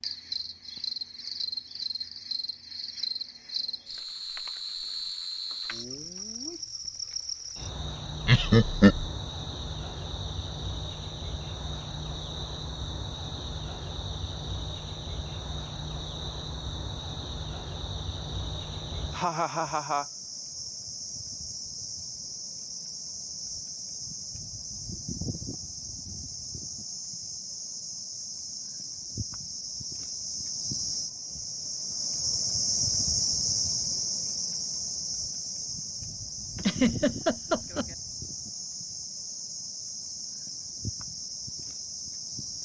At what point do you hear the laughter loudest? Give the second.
9 s.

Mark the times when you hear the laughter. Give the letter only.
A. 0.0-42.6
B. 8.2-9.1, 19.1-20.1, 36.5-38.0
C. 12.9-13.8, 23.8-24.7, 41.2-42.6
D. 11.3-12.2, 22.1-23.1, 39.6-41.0
B.